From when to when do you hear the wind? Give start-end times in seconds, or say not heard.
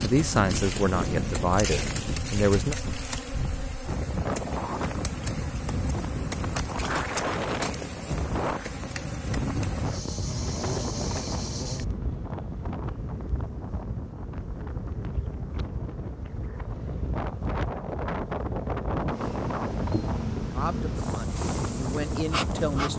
0.0-22.9.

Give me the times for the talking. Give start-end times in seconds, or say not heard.
0.0-2.8, 20.6-22.9.